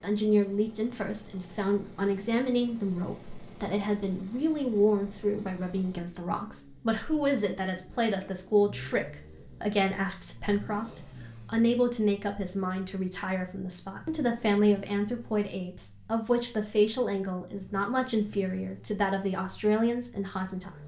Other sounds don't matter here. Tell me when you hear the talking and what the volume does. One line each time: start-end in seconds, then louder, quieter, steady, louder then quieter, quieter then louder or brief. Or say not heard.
0.0-20.8 steady.